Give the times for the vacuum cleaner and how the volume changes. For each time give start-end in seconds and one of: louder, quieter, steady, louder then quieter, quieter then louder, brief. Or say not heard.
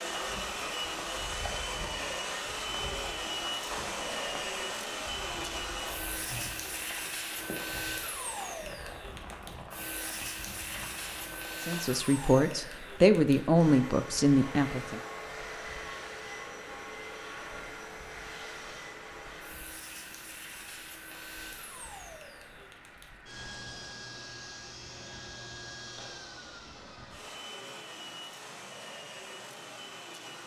0.0-30.4 quieter.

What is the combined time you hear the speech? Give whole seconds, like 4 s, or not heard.
3 s.